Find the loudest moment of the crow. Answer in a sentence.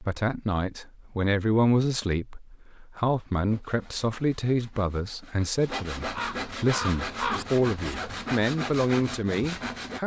The loudest moment of the crow is at 7 seconds.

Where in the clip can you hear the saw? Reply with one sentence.
The saw can be heard from 3.5 to 10.0 s.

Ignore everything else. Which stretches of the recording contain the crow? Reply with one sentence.
You can hear the crow from 6.0 to 8.1 s.